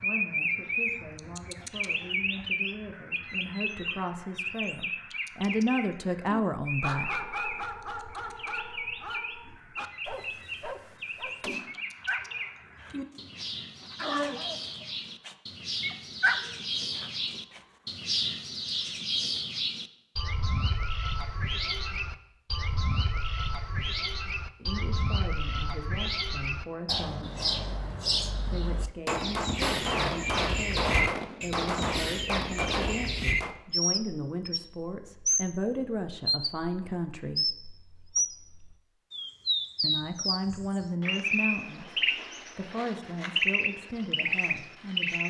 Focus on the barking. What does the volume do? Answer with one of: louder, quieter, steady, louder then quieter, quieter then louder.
quieter then louder.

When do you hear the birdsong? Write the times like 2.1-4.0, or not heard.
0.0-45.2.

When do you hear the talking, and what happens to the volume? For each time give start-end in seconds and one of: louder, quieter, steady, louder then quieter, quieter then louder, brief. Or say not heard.
0.0-7.2 louder
24.6-27.4 brief
28.5-37.5 louder
39.8-45.2 quieter.